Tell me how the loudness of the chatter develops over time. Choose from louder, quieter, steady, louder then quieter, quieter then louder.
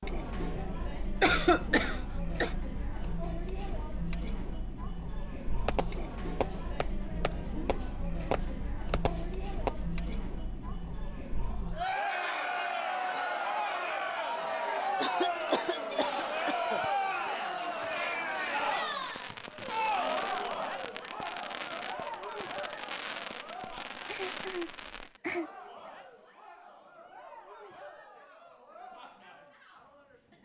louder then quieter.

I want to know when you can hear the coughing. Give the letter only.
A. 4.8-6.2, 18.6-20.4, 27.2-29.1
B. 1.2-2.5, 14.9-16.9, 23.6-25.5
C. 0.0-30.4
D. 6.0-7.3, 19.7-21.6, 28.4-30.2
B.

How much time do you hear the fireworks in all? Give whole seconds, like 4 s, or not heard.
14 s.